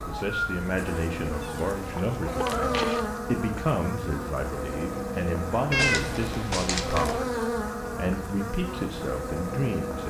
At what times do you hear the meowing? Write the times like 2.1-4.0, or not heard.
1.4-3.0, 5.7-7.2.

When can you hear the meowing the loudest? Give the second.
6 s.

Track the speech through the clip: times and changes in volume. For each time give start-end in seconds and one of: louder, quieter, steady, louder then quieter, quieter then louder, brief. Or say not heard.
0.0-10.0 steady.